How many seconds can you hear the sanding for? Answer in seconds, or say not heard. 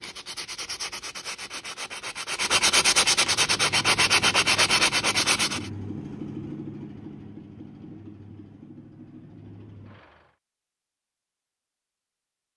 6 s.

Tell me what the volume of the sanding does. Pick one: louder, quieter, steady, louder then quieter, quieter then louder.
louder.